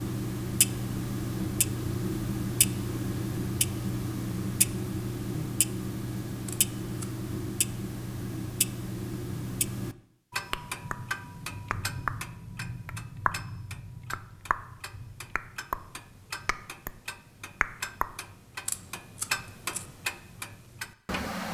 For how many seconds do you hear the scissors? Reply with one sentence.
The scissors can be heard for 2 seconds in total.